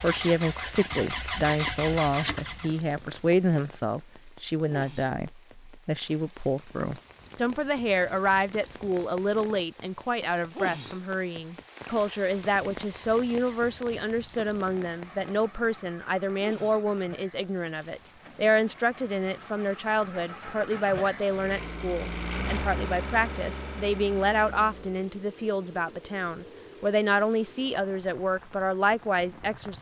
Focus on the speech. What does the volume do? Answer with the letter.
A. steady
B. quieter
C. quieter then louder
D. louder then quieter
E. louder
A.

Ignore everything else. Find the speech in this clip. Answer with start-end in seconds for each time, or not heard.
0.0-29.7.